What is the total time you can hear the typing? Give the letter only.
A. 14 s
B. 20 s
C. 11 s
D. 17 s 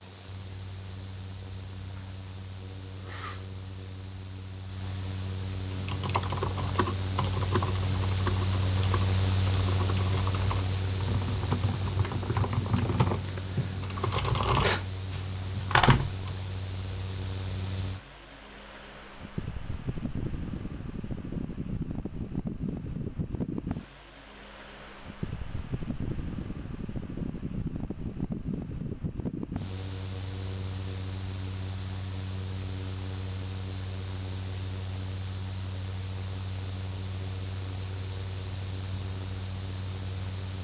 C.